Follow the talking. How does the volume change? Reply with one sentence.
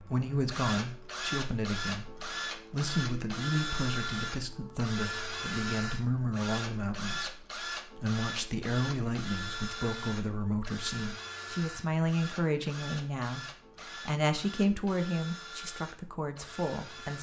The volume of the talking stays about the same.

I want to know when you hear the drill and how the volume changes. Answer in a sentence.
The drill can be heard from 0.0 to 17.1 s, getting quieter.